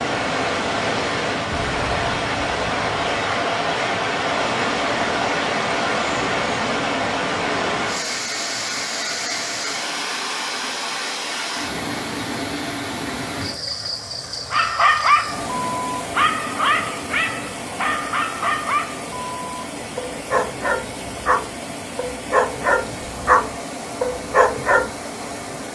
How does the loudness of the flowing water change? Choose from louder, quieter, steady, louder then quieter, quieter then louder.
quieter.